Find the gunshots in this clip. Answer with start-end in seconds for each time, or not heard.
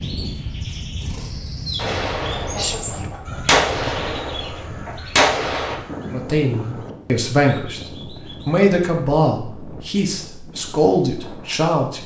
1.8-5.8.